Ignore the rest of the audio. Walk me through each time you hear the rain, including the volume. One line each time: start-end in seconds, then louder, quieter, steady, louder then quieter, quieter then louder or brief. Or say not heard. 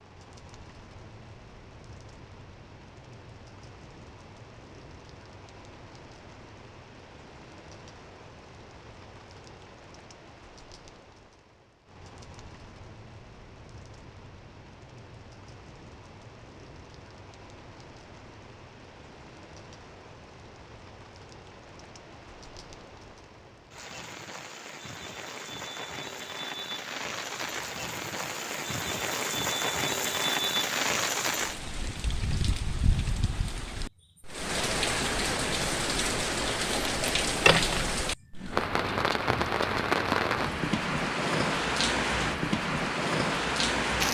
0.0-44.0 louder.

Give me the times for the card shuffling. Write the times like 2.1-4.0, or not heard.
36.9-37.8.